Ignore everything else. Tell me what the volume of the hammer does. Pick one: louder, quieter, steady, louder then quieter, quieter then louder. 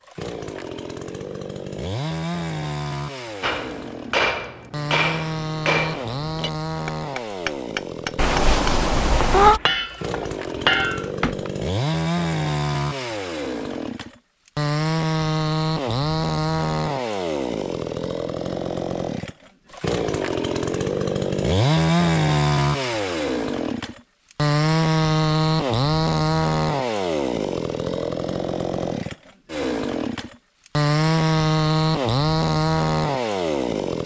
quieter then louder.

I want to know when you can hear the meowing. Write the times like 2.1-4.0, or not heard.
8.2-9.6.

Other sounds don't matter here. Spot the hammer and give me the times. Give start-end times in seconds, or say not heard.
3.4-11.5.